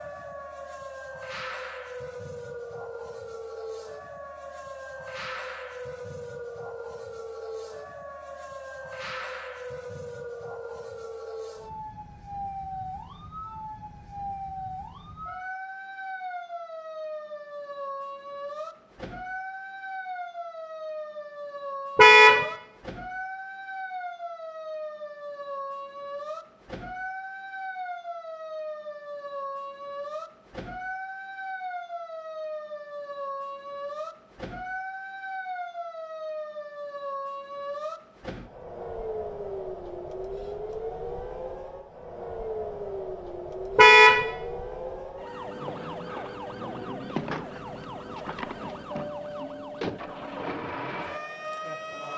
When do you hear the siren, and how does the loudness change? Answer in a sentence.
You can hear the siren from 0.0 to 52.1 s, at a steady volume.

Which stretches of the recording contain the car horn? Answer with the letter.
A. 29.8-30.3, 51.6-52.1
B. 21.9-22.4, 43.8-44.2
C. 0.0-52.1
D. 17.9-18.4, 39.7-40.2
B.